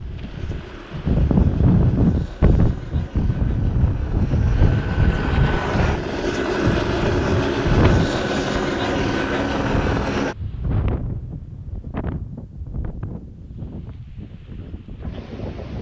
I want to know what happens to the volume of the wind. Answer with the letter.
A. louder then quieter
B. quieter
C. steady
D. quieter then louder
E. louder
B.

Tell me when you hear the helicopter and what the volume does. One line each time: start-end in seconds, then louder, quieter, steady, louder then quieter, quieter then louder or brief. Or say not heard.
0.0-10.3 louder.